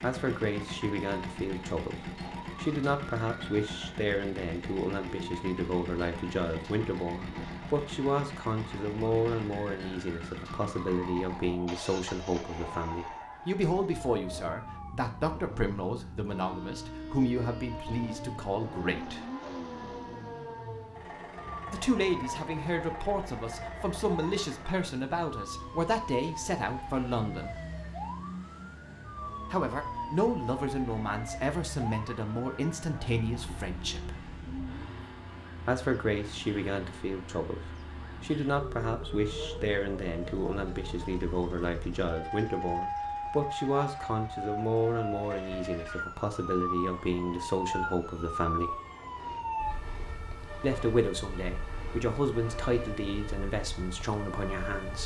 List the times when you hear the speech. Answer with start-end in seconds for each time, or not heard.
0.0-19.2, 21.7-27.6, 29.5-34.2, 35.6-48.8, 50.6-55.0.